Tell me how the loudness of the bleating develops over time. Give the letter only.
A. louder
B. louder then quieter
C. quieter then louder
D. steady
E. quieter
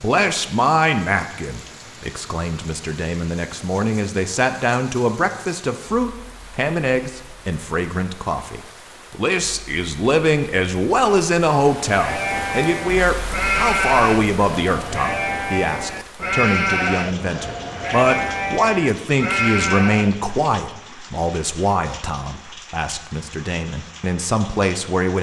D.